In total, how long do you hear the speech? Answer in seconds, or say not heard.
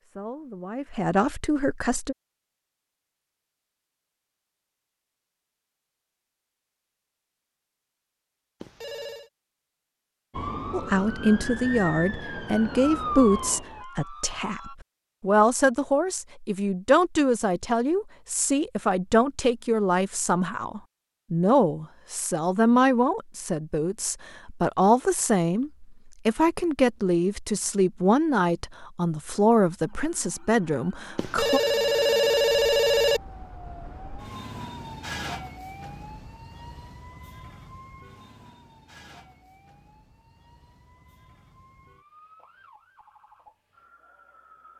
23 s.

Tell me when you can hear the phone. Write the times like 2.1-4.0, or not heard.
8.6-9.3, 31.1-33.2.